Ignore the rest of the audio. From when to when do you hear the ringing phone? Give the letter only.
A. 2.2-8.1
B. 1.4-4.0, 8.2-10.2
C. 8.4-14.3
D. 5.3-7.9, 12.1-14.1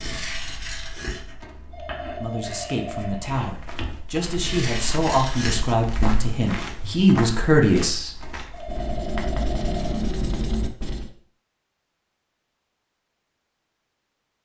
B.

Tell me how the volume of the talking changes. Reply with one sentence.
The volume of the talking goes up.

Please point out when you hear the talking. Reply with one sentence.
You can hear the talking from 2.2 to 8.1 s.